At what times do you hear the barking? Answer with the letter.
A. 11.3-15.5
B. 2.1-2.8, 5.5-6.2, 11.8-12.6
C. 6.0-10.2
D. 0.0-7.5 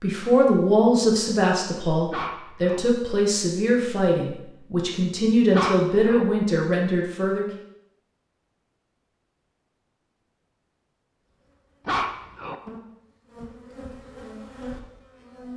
B.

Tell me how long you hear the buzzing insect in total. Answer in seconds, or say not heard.
4 s.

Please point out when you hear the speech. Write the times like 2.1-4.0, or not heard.
0.0-7.5.